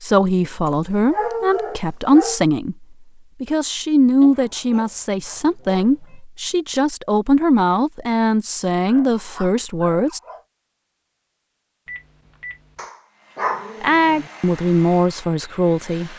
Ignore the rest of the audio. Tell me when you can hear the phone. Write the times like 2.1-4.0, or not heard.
11.8-12.8.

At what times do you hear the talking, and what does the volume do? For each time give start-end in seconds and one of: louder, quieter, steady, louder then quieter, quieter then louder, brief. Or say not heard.
0.0-10.2 steady
13.8-16.1 brief.